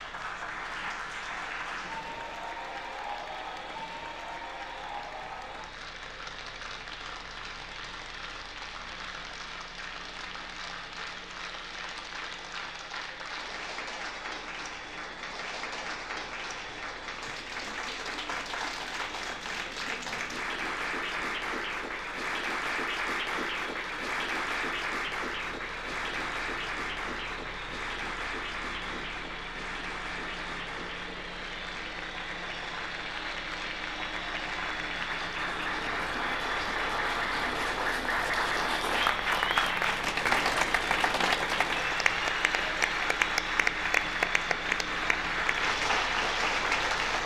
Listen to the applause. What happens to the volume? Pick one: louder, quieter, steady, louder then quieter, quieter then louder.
louder.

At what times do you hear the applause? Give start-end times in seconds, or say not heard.
0.0-47.2.